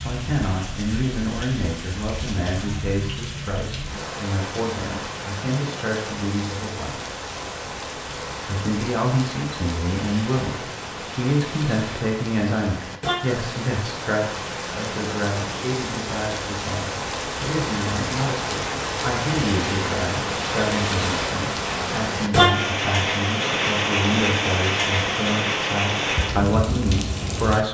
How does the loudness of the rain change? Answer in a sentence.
The loudness of the rain goes up.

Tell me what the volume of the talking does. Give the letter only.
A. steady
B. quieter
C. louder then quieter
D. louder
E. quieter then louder
A.